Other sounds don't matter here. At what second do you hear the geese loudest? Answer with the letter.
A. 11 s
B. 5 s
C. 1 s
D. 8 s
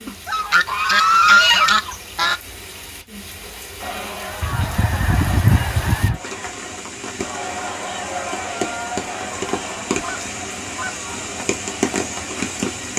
C.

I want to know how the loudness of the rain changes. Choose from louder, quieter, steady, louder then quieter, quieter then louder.
louder.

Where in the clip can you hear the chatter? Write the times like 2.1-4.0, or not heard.
3.8-12.9.